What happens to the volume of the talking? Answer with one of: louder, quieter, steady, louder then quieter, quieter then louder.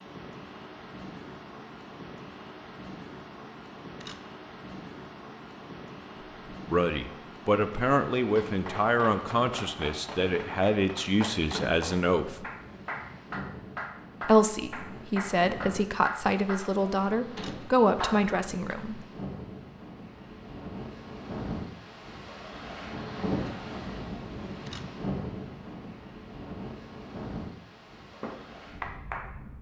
steady.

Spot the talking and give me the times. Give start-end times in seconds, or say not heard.
6.5-12.4, 14.2-19.1.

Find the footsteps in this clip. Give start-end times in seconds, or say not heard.
not heard.